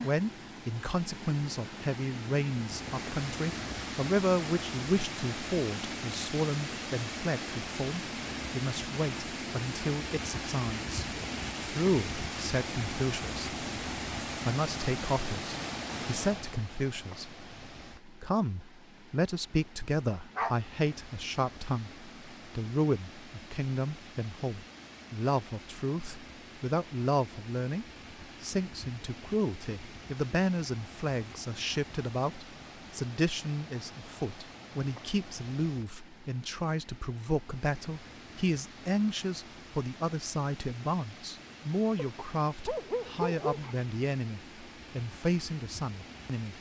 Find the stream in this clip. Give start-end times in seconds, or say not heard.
0.0-46.5.